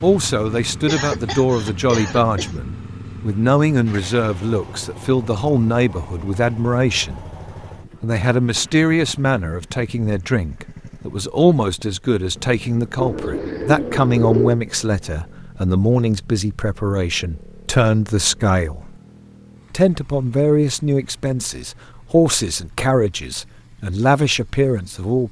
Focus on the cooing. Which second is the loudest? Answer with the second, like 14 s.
14 s.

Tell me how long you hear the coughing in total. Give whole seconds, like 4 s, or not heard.
2 s.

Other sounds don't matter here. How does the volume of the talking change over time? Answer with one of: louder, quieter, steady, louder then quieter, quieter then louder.
steady.